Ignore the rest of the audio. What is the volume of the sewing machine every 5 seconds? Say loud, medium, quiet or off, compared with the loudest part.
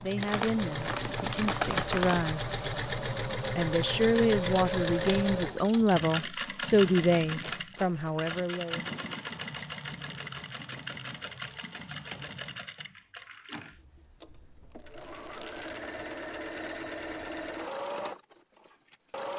loud, loud, medium, medium.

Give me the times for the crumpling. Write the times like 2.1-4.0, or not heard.
0.2-2.4, 7.3-8.3, 14.2-15.8.